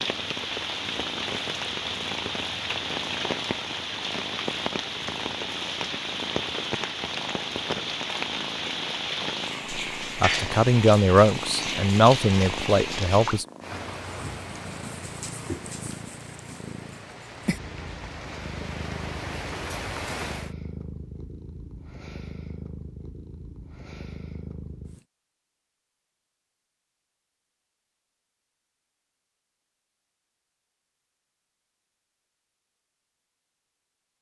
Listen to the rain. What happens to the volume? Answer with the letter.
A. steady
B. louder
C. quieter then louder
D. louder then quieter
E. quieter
E.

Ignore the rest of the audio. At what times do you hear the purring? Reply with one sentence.
The purring can be heard from 0.0 to 25.1 s.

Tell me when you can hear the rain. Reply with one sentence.
You can hear the rain from 0.0 to 20.5 s.